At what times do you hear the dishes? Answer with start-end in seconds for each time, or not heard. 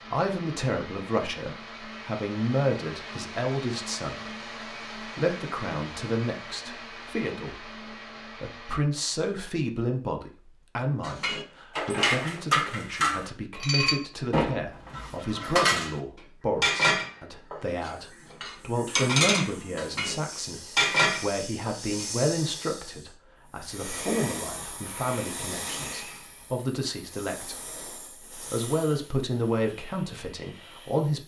11.0-16.0, 16.6-20.1, 20.8-22.1.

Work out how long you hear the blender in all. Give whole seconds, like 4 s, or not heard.
9 s.